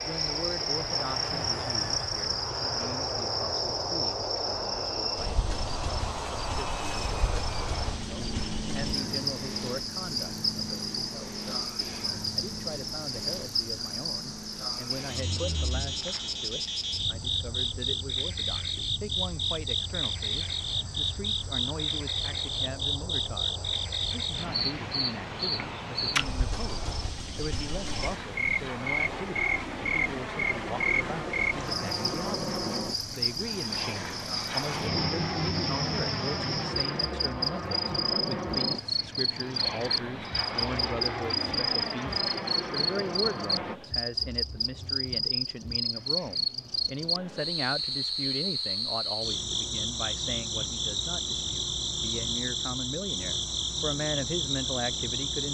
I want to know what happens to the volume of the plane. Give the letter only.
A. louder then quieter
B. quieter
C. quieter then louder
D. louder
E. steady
C.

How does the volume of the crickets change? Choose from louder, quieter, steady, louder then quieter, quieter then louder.
steady.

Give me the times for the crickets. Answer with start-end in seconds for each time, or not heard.
0.0-55.5.